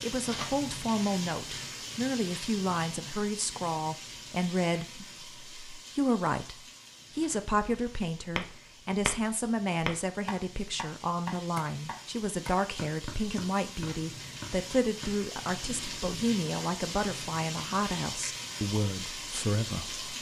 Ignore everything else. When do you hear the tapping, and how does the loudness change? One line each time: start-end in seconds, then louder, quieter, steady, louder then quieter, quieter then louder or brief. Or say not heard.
8.3-16.1 quieter.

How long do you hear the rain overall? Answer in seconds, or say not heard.
20 s.